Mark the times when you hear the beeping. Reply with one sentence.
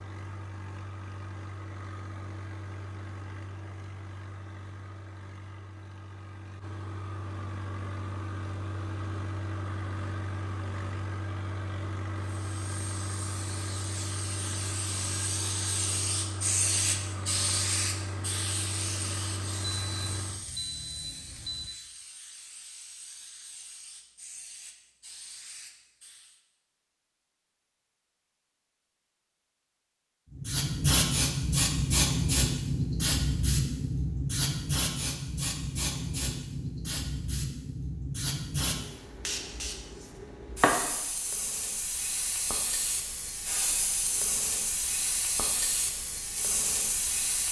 You can hear the beeping from 19.8 to 21.7 s.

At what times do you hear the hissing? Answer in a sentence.
You can hear the hissing from 12.2 to 26.4 s and from 30.4 to 47.4 s.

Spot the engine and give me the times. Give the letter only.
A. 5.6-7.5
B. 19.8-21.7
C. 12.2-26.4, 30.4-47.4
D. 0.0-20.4
D.